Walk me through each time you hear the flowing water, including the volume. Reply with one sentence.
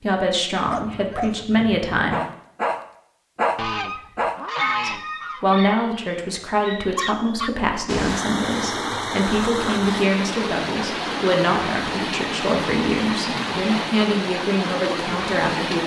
The flowing water can be heard from 7.8 to 15.8 s, at a steady volume.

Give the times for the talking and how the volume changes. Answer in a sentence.
You can hear the talking briefly from 0.0 to 2.2 s; and from 4.8 to 15.8 s, at a steady volume.